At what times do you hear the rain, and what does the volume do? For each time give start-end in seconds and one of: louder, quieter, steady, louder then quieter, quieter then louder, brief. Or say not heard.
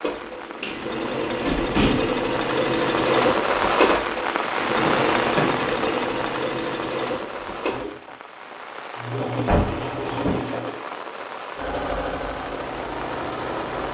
0.0-13.9 louder then quieter.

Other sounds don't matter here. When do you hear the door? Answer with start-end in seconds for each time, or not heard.
0.6-2.1, 4.8-5.7, 9.4-10.4.